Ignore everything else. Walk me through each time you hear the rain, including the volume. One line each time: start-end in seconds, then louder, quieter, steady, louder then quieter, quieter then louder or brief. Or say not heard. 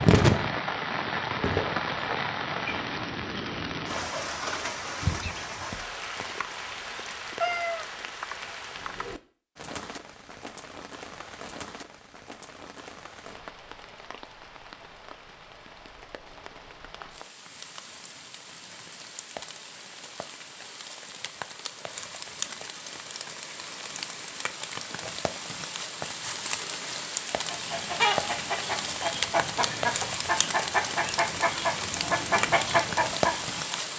0.0-33.9 quieter then louder.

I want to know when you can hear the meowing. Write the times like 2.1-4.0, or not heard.
7.4-7.8.